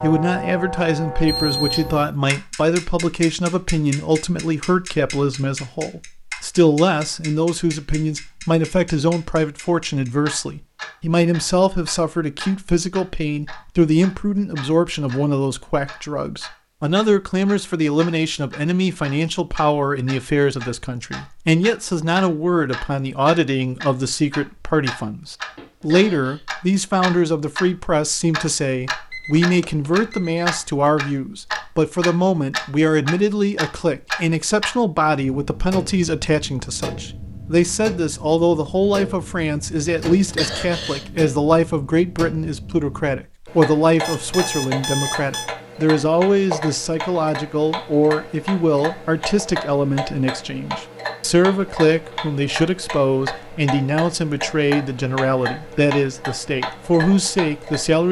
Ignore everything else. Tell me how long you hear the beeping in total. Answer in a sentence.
You can hear the beeping for 4 seconds altogether.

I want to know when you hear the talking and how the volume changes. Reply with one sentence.
You can hear the talking from 0.0 to 58.0 s, at a steady volume.